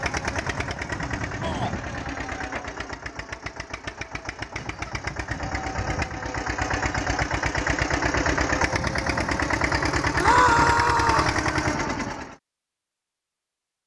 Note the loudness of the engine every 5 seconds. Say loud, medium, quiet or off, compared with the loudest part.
medium, loud, loud.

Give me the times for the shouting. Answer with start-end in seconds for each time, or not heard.
1.4-1.8, 10.2-11.3.